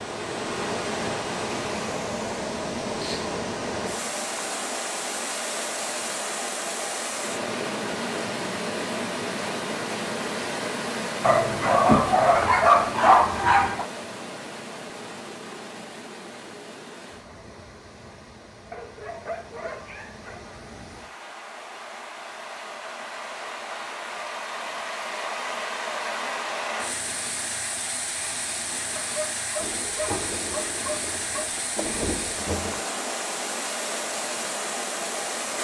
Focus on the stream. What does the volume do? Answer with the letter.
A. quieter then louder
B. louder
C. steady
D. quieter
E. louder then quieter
A.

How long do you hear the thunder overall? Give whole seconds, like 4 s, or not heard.
3 s.